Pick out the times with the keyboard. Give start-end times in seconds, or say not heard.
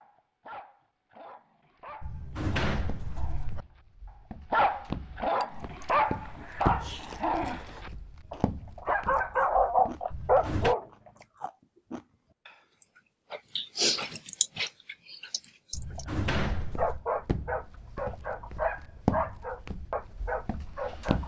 not heard.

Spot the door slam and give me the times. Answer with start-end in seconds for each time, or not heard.
2.0-3.6, 10.1-10.8, 15.7-17.1.